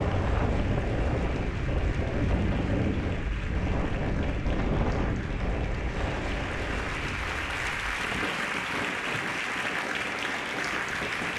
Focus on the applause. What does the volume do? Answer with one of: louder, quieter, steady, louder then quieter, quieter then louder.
louder.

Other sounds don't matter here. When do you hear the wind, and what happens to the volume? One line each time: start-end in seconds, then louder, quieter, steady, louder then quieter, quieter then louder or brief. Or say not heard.
0.0-11.3 quieter.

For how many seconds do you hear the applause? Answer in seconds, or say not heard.
11 s.